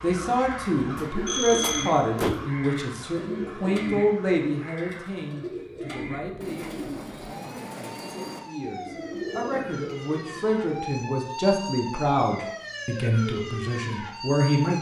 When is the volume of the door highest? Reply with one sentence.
The loudest moment of the door is at 2 seconds.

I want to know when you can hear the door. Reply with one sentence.
The door can be heard from 0.9 to 2.5 s.